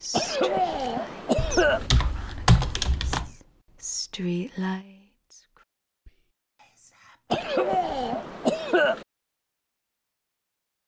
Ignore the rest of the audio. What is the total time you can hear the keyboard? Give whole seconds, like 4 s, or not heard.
2 s.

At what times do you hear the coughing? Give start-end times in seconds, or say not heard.
0.1-1.9, 7.3-9.1.